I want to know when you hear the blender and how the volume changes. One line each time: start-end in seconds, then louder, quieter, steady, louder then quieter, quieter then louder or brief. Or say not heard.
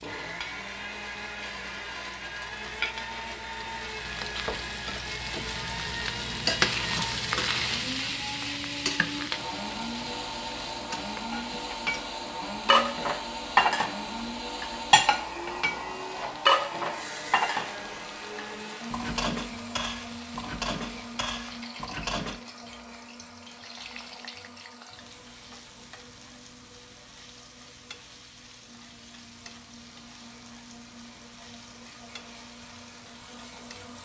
0.0-34.0 quieter.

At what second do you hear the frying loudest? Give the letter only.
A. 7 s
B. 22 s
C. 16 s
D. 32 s
A.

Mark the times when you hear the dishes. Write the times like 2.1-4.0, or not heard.
11.3-13.9, 14.6-22.4.